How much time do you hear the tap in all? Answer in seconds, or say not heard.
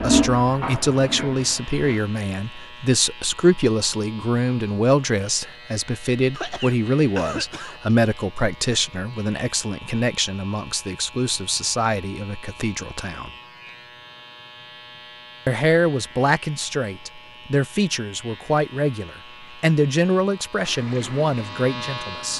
4 s.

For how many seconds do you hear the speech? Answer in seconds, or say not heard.
20 s.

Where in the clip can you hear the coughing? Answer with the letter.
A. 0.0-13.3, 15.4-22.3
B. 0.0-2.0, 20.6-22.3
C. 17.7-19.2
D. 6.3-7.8
D.